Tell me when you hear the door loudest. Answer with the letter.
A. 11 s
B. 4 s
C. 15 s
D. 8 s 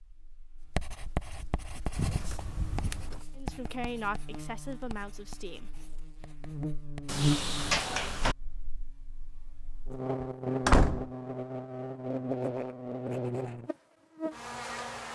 A.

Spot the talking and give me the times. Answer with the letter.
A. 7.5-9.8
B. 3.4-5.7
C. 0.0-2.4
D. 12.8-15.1
B.